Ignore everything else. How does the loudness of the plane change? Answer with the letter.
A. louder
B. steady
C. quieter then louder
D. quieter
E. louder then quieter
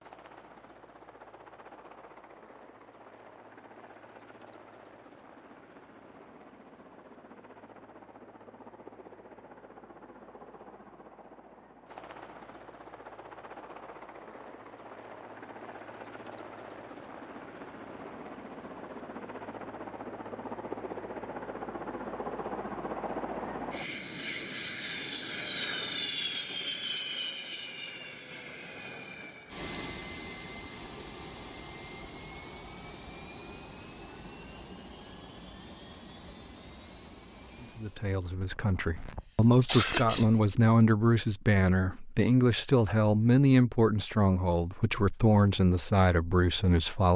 E.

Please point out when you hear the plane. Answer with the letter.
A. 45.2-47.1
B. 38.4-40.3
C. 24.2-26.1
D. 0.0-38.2
D.